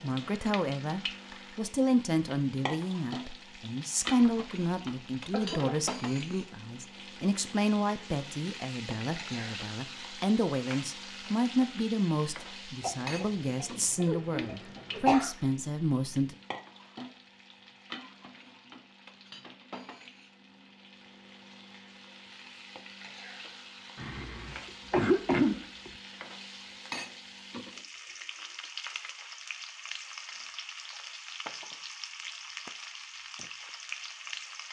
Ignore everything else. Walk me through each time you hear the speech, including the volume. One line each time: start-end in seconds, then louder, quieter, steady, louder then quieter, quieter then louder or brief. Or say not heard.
0.0-16.4 steady.